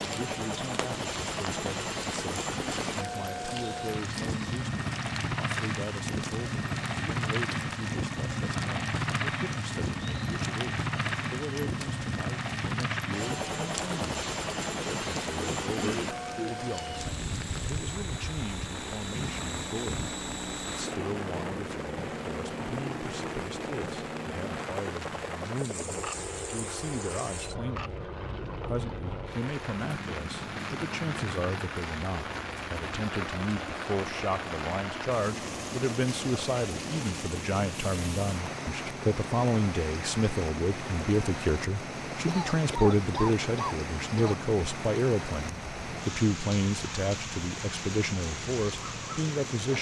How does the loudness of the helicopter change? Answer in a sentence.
The loudness of the helicopter goes down.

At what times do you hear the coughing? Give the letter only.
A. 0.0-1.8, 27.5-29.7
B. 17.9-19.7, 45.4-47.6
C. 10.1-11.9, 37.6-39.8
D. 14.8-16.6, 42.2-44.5
D.